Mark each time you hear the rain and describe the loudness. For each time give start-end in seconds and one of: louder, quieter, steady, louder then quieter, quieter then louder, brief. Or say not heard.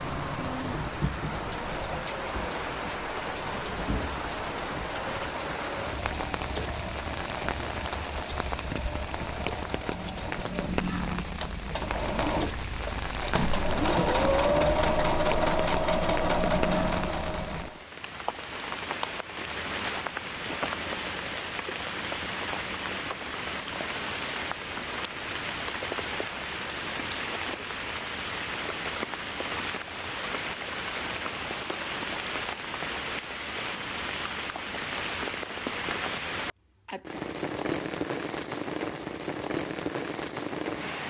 0.0-41.0 steady.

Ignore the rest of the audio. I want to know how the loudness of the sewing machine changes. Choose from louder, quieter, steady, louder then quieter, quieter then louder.
louder.